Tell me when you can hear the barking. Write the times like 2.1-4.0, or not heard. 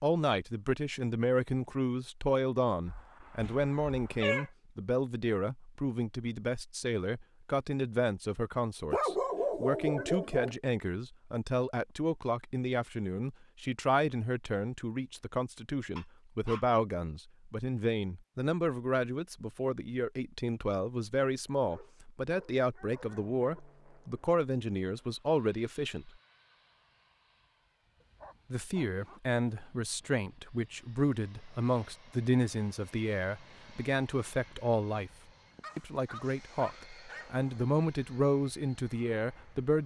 2.9-4.5, 8.9-10.6, 15.9-16.6, 21.6-23.6, 28.0-29.2, 35.6-37.4.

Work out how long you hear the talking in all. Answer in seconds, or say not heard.
37 s.